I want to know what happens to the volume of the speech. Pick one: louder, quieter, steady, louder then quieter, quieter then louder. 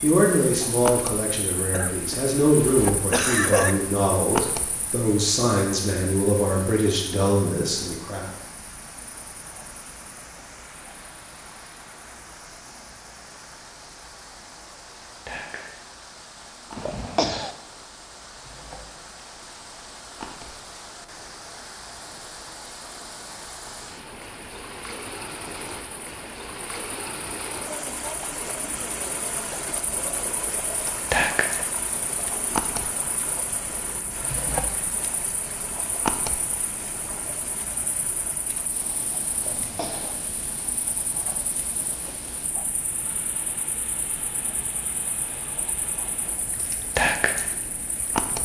steady.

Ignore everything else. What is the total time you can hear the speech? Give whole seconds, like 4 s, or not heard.
8 s.